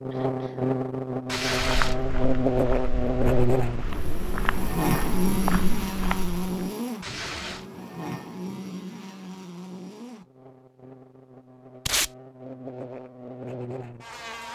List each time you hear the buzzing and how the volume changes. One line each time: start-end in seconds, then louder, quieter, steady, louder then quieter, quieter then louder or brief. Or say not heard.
0.0-14.5 quieter.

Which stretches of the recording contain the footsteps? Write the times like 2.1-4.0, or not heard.
1.6-6.5.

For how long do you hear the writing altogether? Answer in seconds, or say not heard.
not heard.